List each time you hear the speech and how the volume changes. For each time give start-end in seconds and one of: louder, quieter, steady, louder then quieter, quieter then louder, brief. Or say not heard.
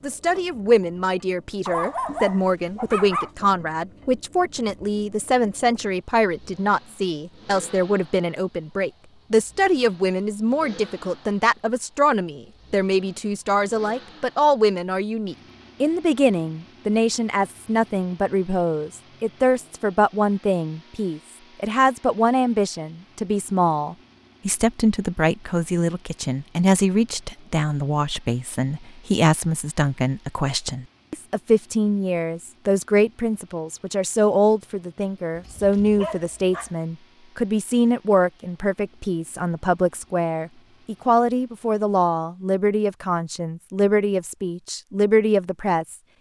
0.0-46.0 steady.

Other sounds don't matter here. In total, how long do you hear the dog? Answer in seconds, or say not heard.
3 s.